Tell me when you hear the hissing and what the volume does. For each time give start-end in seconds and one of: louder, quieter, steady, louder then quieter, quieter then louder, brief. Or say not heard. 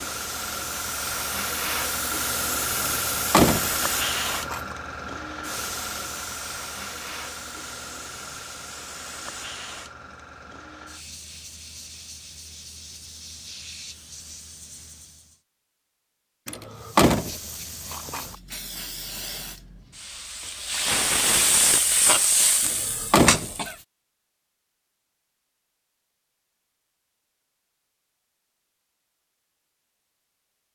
0.0-15.4 quieter
16.7-23.8 louder.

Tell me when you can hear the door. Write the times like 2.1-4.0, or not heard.
2.9-4.7, 16.4-18.4, 22.6-23.5.